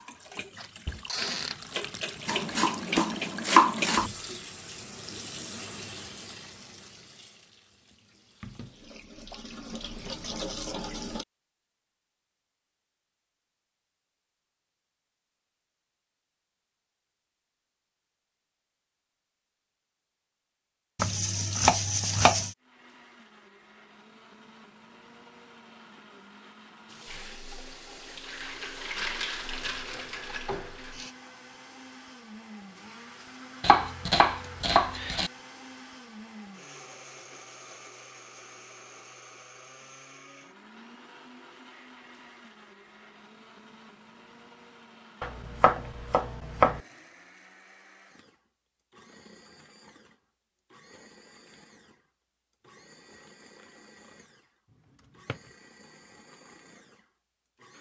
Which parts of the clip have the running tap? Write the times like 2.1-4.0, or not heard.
0.0-11.2, 26.9-31.1.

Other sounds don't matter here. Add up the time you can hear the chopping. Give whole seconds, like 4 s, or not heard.
7 s.